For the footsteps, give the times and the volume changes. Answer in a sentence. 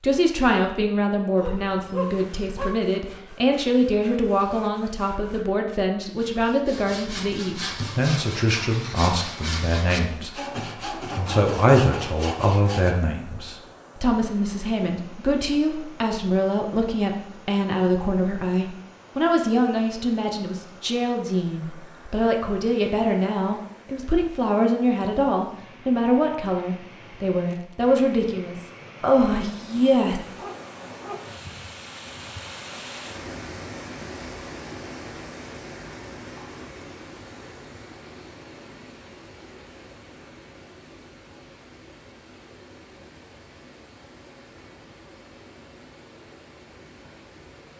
You can't hear the footsteps here.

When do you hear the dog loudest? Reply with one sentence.
The loudest moment of the dog is at 2 seconds.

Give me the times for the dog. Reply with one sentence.
The dog can be heard from 1.4 to 2.8 s and from 30.2 to 31.2 s.